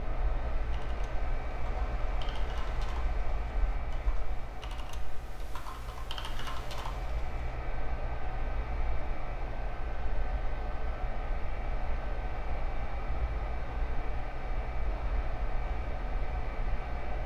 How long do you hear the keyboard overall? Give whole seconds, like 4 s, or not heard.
7 s.